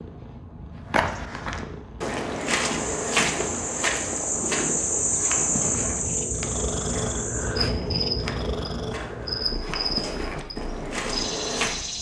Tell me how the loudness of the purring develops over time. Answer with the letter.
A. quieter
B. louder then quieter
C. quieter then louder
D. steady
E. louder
B.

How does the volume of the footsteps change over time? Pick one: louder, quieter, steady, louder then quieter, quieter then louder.
quieter then louder.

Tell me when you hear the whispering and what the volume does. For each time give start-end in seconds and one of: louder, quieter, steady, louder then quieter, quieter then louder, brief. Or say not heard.
not heard.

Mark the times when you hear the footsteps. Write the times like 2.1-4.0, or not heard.
0.8-11.8.